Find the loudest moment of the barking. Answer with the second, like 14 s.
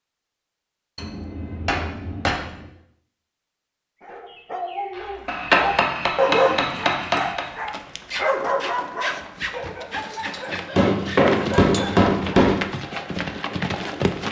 6 s.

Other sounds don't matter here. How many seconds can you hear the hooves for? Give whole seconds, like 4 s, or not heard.
7 s.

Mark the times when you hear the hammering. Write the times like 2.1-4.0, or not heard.
0.9-2.6, 5.2-7.5, 10.8-12.7.